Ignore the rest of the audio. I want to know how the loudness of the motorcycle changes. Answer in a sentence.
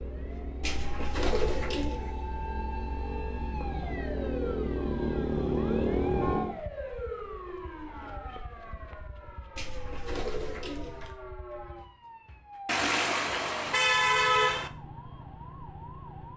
The loudness of the motorcycle goes up.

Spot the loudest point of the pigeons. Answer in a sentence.
The volume of the pigeons peaks at 1 second.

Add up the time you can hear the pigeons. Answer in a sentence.
You can hear the pigeons for 3 seconds altogether.